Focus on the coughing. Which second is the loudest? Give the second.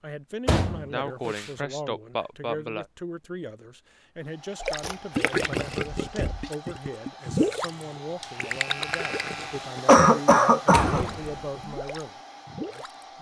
10 s.